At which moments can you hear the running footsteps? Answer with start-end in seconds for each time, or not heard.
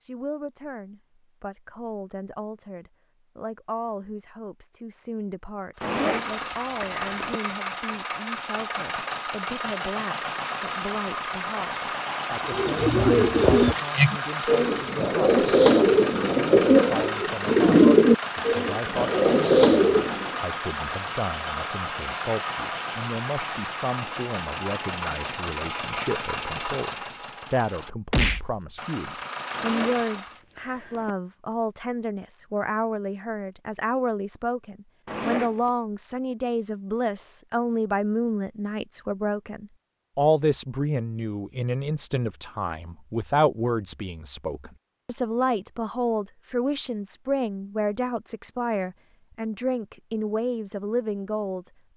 not heard.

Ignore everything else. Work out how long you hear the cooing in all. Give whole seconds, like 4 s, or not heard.
8 s.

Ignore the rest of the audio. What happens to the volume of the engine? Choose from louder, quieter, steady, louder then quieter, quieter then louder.
steady.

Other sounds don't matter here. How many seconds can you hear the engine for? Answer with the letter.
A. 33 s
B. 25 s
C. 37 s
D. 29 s
B.